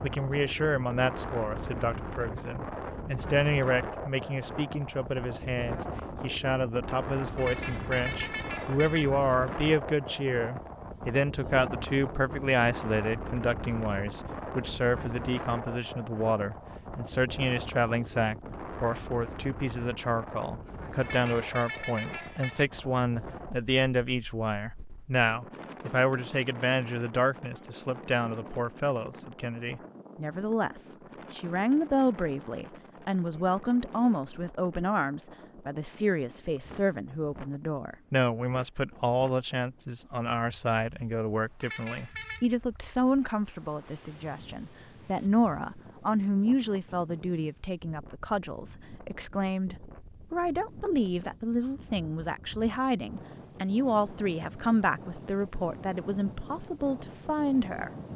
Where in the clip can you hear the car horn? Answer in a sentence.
The car horn can be heard from 7.3 to 9.1 s, from 21.0 to 22.7 s and from 41.6 to 42.5 s.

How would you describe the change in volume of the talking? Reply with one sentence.
The volume of the talking stays about the same.